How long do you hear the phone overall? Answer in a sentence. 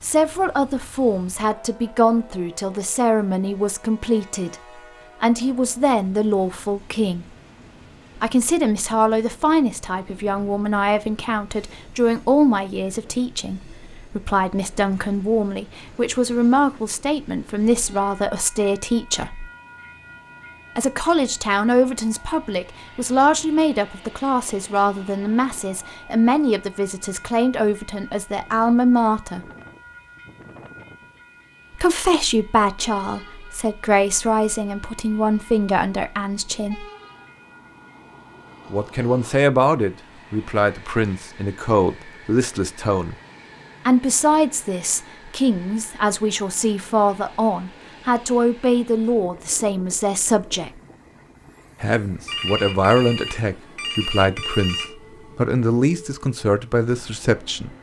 You can hear the phone for 3 seconds altogether.